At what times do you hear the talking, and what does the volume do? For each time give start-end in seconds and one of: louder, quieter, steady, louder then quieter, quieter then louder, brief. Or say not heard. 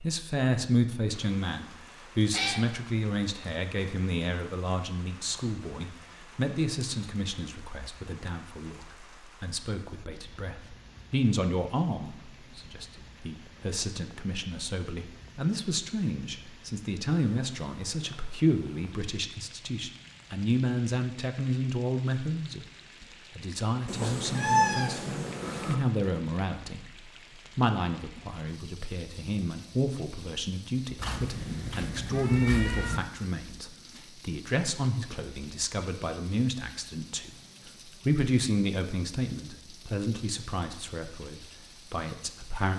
0.0-42.7 steady.